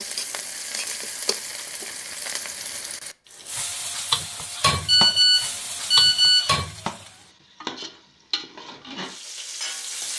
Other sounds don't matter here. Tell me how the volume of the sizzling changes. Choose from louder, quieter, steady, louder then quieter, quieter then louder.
louder then quieter.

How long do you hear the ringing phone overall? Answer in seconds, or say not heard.
2 s.